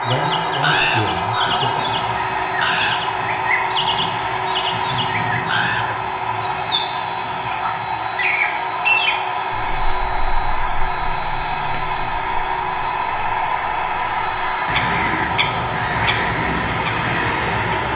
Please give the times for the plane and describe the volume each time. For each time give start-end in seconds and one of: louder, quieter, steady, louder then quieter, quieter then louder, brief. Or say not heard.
0.0-17.9 steady.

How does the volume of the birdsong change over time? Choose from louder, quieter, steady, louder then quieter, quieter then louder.
quieter then louder.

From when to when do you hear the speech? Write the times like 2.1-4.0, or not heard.
0.0-1.9.